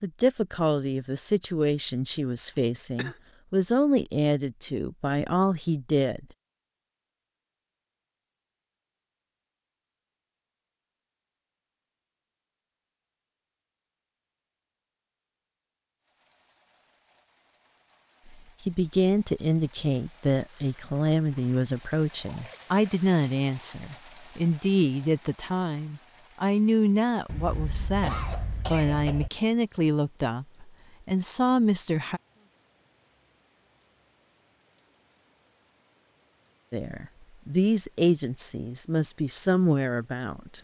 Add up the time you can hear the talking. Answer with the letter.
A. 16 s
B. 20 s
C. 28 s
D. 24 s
D.